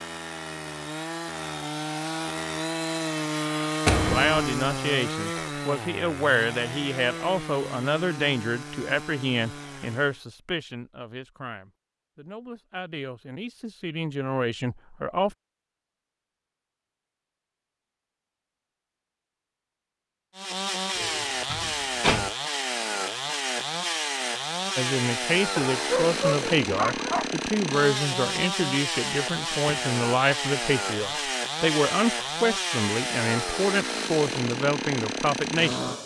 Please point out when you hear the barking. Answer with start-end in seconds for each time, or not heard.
25.6-27.3.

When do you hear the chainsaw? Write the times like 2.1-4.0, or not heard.
0.0-10.2, 20.4-36.0.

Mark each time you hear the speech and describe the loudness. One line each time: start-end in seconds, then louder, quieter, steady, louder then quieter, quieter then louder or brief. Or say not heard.
4.1-15.3 quieter then louder
24.8-35.8 steady.